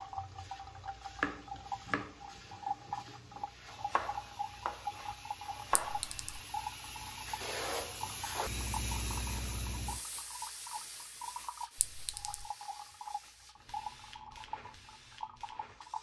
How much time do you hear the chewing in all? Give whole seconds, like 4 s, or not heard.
not heard.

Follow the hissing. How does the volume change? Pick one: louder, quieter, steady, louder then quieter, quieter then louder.
louder then quieter.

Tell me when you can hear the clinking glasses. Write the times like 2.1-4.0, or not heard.
5.8-6.4, 11.8-12.4.